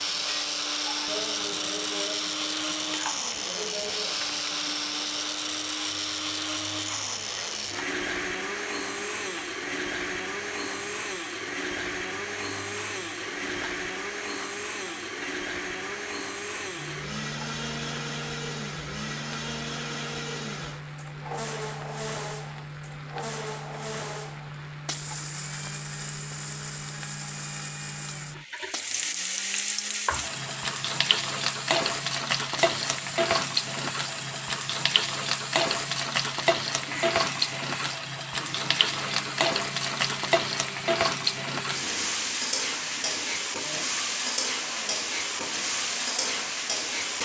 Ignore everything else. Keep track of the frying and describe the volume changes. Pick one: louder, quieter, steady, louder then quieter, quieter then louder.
louder.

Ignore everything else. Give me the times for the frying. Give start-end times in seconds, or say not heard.
0.0-47.2.